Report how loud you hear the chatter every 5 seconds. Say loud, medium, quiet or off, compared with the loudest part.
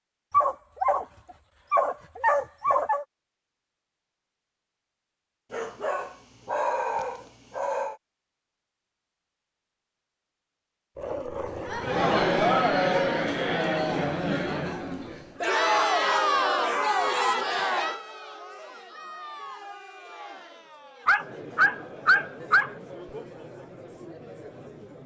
off, off, loud, loud, quiet.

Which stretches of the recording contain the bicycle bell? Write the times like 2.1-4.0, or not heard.
not heard.